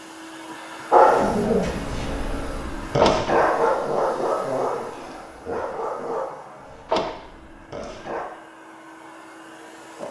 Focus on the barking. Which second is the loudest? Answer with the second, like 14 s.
1 s.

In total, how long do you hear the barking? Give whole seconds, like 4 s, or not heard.
7 s.